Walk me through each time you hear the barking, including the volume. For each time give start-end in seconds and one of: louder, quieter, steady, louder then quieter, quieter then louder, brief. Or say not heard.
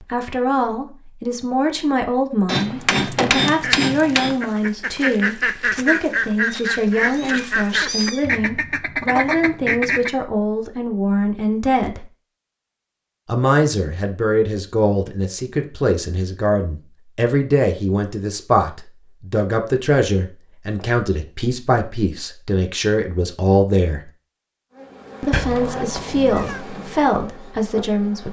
not heard.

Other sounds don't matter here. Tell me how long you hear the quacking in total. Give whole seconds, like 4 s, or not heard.
7 s.